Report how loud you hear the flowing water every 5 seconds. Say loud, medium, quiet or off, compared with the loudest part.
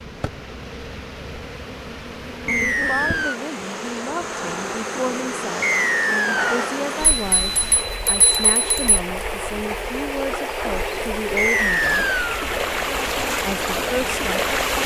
quiet, medium, loud.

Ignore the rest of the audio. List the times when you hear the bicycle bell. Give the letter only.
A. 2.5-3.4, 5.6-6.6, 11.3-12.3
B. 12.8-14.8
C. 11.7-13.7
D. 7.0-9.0
D.